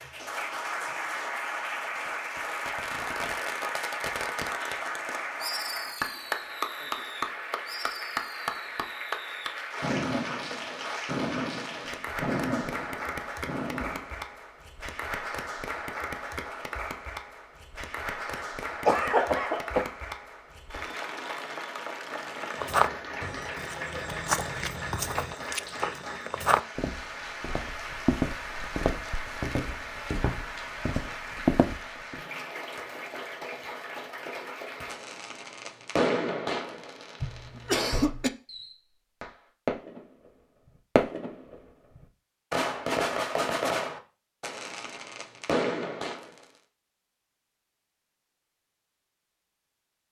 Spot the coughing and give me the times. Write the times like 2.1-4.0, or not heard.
18.4-19.9, 37.2-38.3.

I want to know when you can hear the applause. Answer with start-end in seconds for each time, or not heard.
0.0-35.0.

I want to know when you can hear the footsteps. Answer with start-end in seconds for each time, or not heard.
22.4-32.1.